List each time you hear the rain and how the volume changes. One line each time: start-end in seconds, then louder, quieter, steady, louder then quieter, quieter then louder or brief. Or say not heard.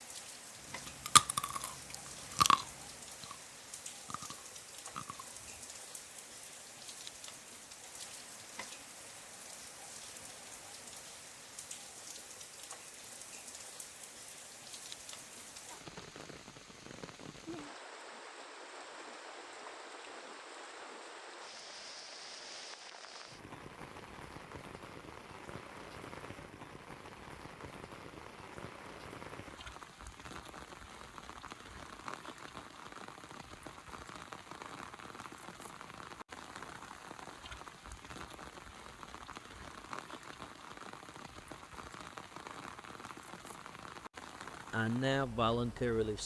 0.0-46.2 steady.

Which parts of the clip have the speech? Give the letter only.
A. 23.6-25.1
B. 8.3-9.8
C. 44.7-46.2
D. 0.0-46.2
C.